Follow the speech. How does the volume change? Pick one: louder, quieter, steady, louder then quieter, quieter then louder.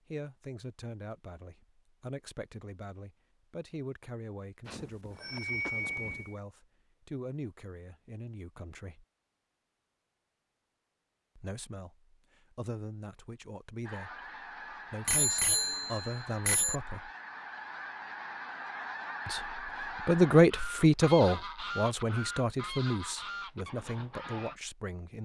louder then quieter.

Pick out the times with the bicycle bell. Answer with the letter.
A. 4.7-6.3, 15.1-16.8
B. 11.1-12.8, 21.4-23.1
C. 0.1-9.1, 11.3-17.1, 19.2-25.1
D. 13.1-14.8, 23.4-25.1
A.